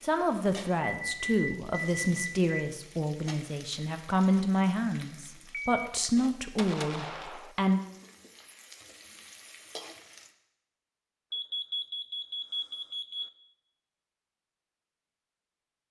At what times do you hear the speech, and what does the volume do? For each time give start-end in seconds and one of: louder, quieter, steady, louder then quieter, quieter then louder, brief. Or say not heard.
0.0-7.8 steady.